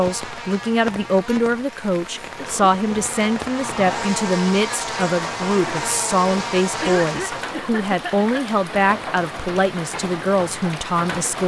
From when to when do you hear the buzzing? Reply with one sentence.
The buzzing can be heard from 0.0 to 7.5 s.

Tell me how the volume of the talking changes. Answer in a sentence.
The volume of the talking stays about the same.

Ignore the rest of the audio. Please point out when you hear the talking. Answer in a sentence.
The talking can be heard from 0.0 to 11.4 s.